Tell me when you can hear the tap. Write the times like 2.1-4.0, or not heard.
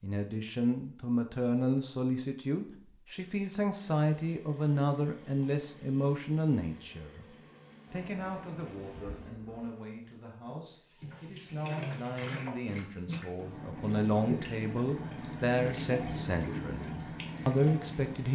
3.9-18.3.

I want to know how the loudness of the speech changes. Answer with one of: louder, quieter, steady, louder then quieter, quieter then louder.
quieter then louder.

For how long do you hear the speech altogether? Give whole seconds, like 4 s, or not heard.
18 s.